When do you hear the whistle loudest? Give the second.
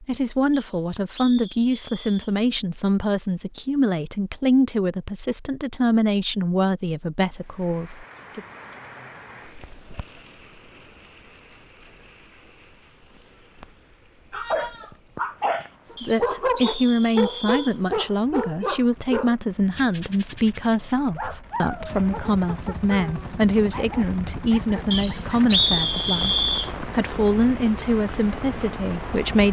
26 s.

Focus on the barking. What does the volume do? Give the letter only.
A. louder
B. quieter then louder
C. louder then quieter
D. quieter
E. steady
D.